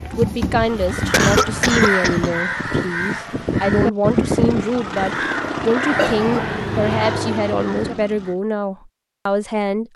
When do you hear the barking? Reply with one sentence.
You can hear the barking from 0.0 to 1.8 s.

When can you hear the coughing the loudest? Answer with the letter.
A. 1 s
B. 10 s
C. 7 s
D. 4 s
A.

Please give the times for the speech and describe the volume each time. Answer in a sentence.
The speech can be heard from 0.1 to 9.9 s, at a steady volume.